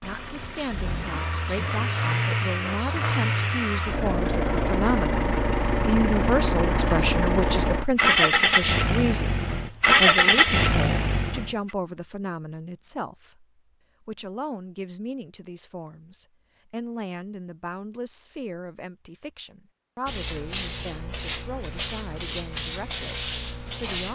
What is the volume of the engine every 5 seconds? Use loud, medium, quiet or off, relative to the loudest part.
medium, loud, loud, off, off.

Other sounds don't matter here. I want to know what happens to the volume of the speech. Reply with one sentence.
The loudness of the speech goes up, then down.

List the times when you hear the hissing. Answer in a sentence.
You can hear the hissing from 20.1 to 24.0 s.